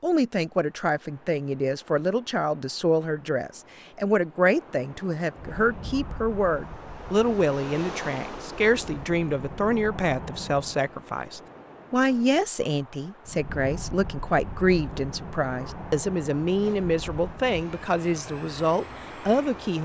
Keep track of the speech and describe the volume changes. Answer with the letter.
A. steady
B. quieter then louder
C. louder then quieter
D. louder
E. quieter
A.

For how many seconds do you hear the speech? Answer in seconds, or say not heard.
20 s.